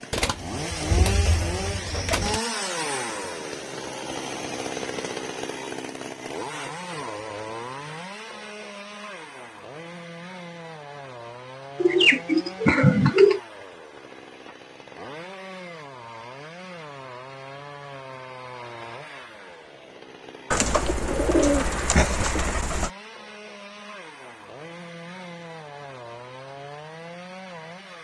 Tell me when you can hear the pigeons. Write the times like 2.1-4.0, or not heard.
0.1-2.4, 11.8-13.4, 20.5-22.9.